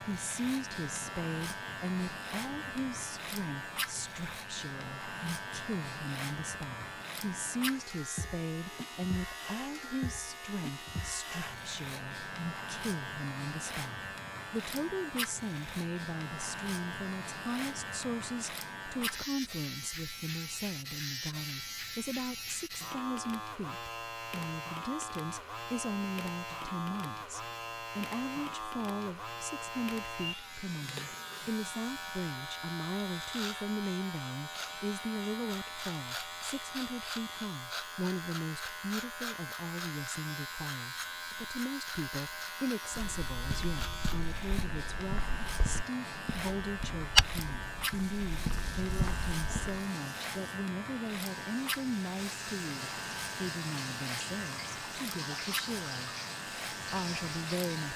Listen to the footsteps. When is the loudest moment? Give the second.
47 s.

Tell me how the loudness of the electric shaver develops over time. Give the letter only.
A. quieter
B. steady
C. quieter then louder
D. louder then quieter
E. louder
B.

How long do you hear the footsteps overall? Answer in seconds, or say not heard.
7 s.